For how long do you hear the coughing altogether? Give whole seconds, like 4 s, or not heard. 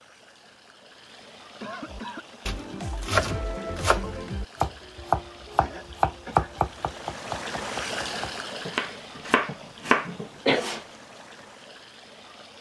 3 s.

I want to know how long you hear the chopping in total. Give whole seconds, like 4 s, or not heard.
9 s.